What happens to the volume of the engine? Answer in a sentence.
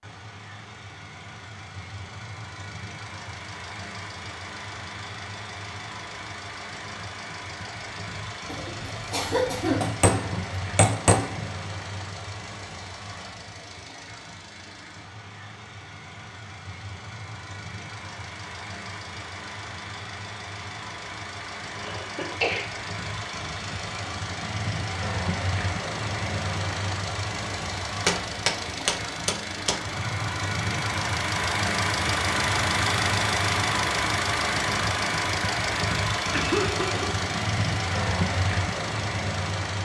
The volume of the engine goes up.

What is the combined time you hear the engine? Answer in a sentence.
The engine can be heard for 40 seconds in total.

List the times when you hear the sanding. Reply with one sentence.
The sanding can't be heard in this clip.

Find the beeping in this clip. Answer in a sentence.
You can't hear the beeping here.